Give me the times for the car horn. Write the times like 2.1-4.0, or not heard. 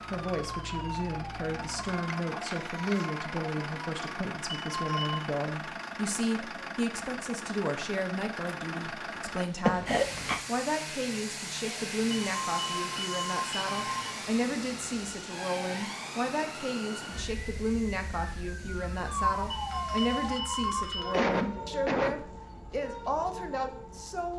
not heard.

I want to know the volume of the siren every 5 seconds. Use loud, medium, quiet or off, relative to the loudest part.
loud, off, medium, loud, loud.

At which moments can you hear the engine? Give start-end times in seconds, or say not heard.
0.0-20.4.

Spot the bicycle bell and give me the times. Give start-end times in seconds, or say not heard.
4.5-5.2, 12.2-14.1, 19.5-21.3.